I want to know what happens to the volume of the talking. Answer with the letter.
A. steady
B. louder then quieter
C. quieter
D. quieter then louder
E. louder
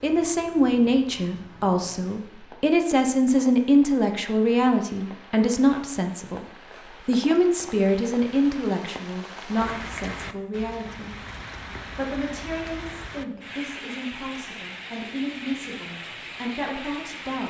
C.